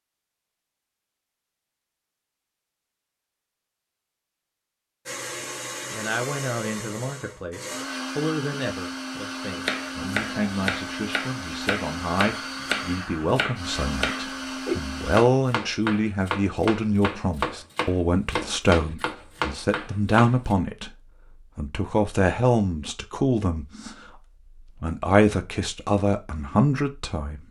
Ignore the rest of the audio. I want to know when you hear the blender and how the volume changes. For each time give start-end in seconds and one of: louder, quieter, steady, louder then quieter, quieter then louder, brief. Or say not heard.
5.0-15.2 steady.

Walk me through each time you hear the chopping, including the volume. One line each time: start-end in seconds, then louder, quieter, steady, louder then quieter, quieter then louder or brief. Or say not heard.
9.6-20.6 steady.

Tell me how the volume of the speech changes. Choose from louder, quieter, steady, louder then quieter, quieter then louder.
louder.